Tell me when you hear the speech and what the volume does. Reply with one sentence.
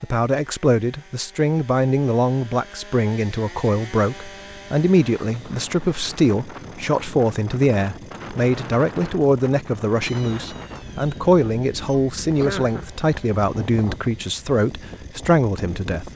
The speech can be heard from 0.0 to 16.1 s, at a steady volume.